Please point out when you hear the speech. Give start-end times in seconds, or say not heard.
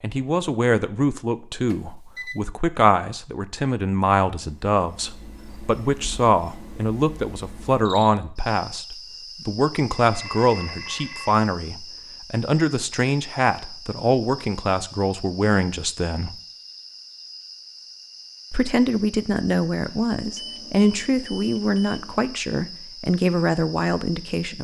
0.0-16.4, 18.5-24.6.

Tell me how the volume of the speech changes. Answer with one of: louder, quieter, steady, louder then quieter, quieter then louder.
steady.